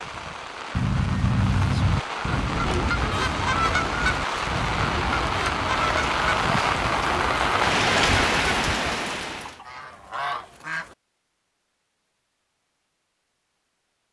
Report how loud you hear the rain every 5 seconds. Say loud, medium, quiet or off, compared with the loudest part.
medium, loud, off.